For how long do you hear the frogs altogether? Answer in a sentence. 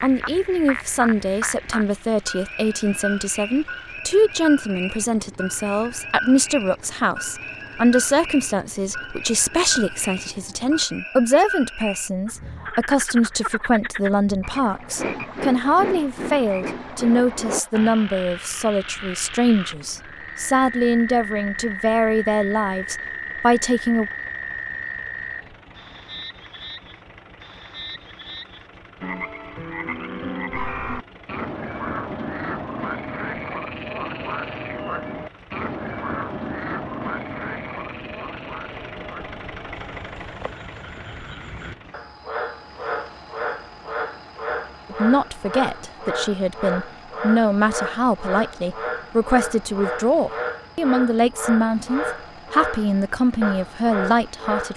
You can hear the frogs for 55 seconds altogether.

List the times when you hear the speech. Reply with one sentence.
The speech can be heard from 0.0 to 24.1 s and from 44.9 to 54.7 s.